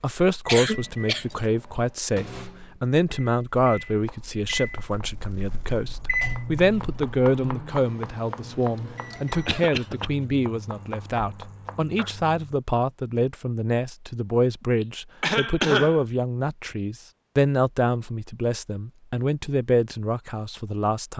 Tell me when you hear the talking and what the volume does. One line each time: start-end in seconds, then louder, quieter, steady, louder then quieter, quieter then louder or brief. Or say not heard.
0.0-21.1 steady.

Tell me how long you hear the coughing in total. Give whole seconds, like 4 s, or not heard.
3 s.